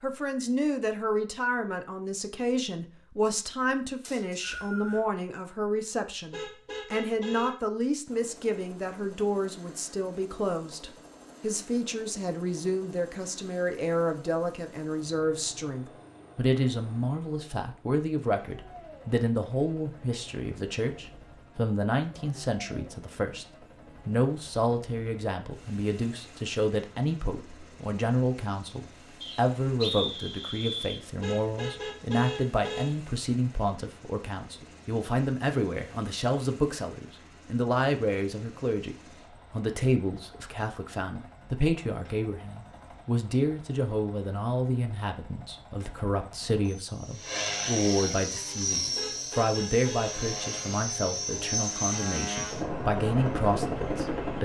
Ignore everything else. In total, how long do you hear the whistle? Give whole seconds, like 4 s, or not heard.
3 s.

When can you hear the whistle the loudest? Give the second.
30 s.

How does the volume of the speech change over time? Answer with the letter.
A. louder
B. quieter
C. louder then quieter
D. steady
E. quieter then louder
D.